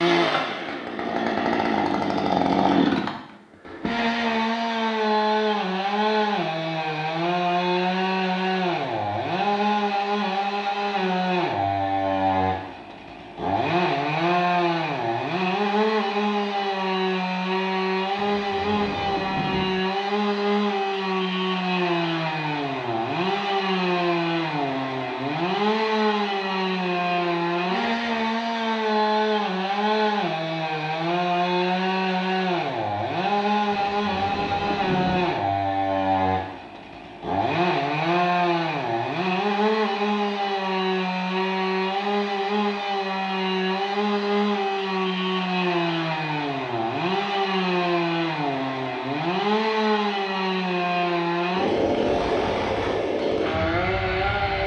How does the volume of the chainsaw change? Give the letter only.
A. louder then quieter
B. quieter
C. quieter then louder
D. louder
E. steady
E.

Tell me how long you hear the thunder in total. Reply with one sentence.
The thunder can be heard for 3 seconds in total.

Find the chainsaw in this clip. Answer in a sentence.
You can hear the chainsaw from 0.0 to 54.6 s.